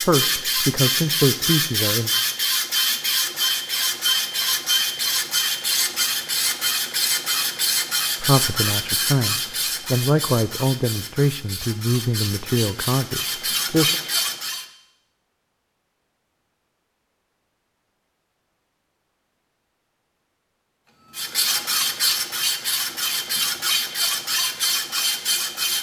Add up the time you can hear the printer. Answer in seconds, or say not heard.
19 s.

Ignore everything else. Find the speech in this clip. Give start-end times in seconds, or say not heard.
0.0-2.1, 8.2-13.9.